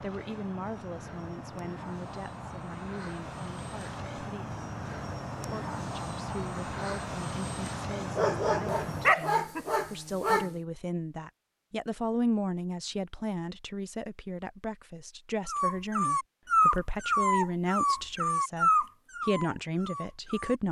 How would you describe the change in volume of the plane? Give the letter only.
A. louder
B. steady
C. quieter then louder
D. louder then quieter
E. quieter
A.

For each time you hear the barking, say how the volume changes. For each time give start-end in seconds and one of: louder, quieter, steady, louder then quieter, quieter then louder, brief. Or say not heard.
8.0-10.5 brief
15.4-20.6 quieter.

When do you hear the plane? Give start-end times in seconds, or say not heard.
0.0-9.2.